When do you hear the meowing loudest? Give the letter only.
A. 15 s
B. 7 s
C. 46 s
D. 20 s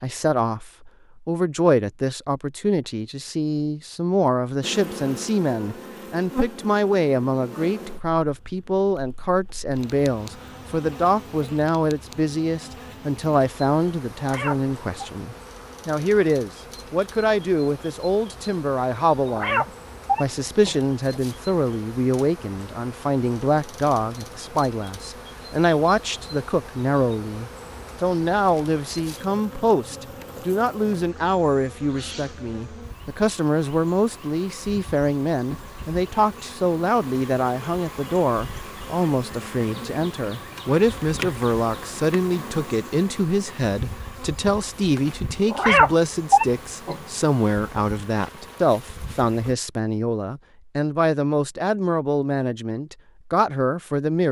C.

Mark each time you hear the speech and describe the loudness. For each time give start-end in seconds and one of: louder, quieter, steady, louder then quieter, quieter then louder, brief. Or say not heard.
0.0-54.2 steady.